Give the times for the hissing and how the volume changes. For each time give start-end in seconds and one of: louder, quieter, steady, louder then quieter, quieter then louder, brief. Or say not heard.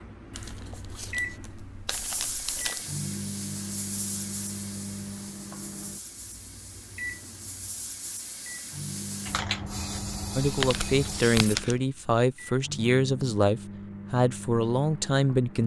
1.9-11.6 quieter then louder.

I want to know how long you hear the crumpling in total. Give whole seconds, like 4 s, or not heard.
4 s.